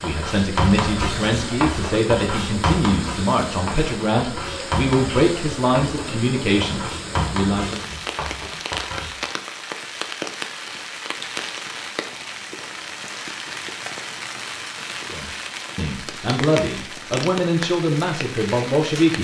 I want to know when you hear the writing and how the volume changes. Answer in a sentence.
You can hear the writing from 0.0 to 9.3 s, getting quieter.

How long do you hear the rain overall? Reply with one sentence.
The rain can be heard for 19 seconds in total.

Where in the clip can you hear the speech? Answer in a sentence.
You can hear the speech from 0.0 to 7.8 s and from 15.1 to 19.1 s.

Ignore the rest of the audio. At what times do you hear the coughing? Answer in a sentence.
You can't hear the coughing here.